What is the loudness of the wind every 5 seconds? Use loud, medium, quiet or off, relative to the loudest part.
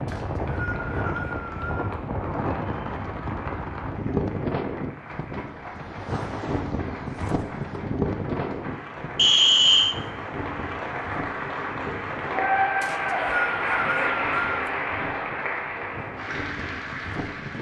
loud, loud, medium, medium.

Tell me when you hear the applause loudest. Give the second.
13 s.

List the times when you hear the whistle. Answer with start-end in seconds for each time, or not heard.
0.1-1.9, 9.2-9.9, 12.8-14.7.